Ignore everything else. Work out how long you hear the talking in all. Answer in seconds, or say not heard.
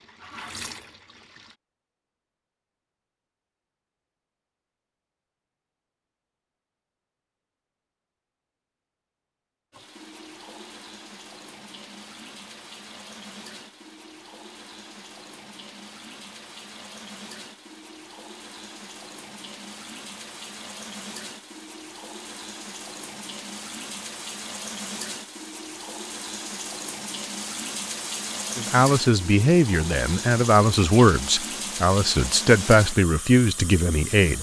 6 s.